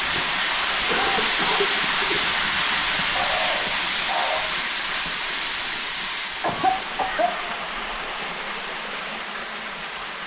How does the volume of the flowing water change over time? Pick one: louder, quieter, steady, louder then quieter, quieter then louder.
quieter.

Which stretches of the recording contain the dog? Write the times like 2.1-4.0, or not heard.
3.0-4.5.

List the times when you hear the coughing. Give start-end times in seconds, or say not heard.
0.8-2.2, 6.4-7.3.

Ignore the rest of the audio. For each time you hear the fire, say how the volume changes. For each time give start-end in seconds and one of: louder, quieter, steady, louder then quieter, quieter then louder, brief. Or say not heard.
not heard.